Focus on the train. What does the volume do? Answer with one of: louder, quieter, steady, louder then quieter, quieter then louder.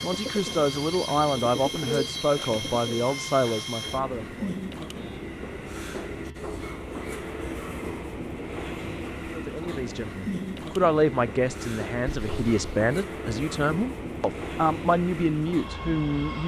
steady.